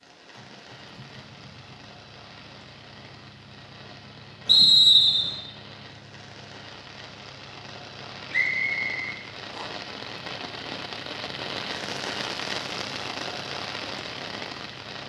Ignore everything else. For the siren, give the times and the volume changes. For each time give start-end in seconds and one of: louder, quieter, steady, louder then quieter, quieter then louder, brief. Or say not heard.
not heard.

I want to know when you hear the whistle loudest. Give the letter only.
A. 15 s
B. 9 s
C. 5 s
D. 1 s
C.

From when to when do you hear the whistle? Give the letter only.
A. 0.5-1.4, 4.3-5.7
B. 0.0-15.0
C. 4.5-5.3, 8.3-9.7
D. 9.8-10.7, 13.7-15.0
C.